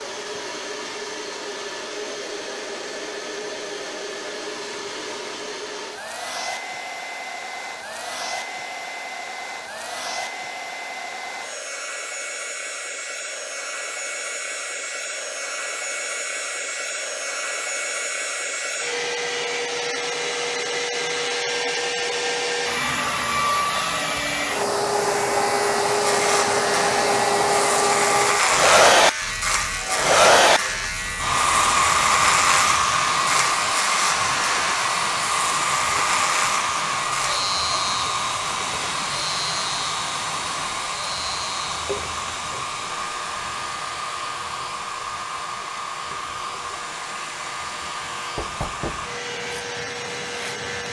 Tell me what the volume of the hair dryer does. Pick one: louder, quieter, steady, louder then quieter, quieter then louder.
louder then quieter.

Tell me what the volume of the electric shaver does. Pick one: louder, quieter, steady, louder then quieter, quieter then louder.
quieter.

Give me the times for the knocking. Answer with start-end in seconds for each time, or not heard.
48.4-49.0.